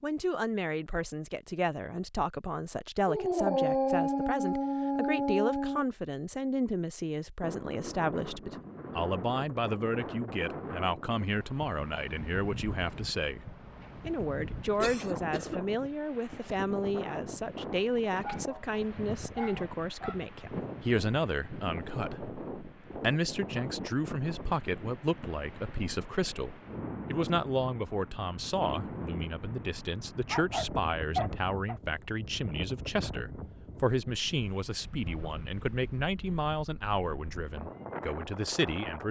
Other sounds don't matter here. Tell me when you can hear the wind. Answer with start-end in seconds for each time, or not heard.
7.4-39.0.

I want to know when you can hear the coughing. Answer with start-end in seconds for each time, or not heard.
14.8-15.6.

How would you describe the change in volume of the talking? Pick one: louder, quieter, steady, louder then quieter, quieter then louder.
steady.